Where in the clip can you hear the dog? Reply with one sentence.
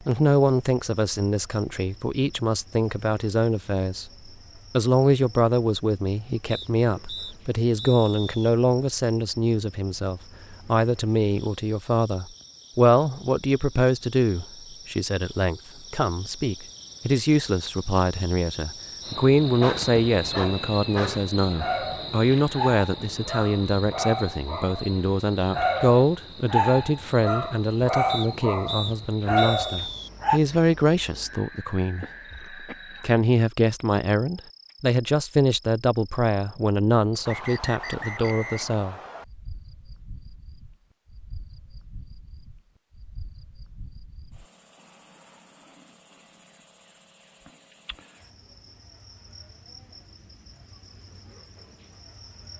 The dog can be heard from 19.6 to 30.4 s.